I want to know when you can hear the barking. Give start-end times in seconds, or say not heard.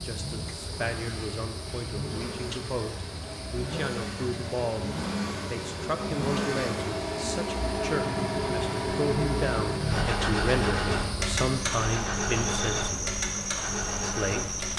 not heard.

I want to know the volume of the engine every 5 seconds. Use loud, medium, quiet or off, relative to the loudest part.
medium, loud, loud.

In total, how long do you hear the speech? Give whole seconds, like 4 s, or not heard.
14 s.